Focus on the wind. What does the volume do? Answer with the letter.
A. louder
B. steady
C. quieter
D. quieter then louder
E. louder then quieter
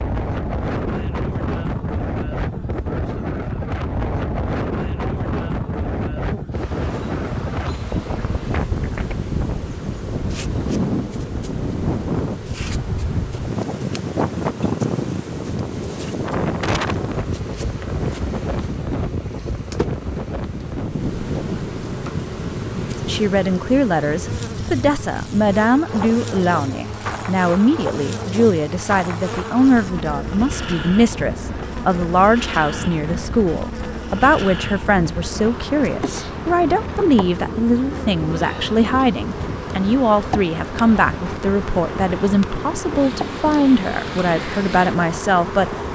C.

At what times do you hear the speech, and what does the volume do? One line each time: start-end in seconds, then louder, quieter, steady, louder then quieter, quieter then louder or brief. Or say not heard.
23.1-45.8 steady.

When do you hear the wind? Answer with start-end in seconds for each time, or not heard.
0.0-45.9.